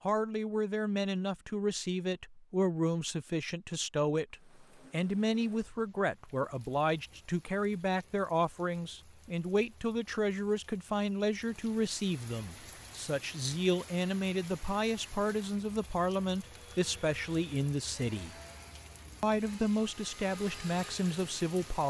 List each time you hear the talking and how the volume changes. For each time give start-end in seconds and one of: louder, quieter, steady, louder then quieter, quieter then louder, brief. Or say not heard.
0.0-18.4 steady
19.2-21.8 brief.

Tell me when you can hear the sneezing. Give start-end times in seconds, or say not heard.
not heard.